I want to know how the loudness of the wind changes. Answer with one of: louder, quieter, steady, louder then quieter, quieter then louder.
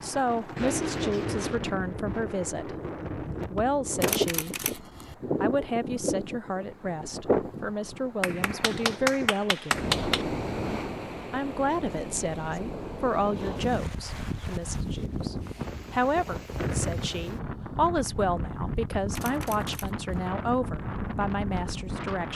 steady.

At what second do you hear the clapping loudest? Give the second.
10 s.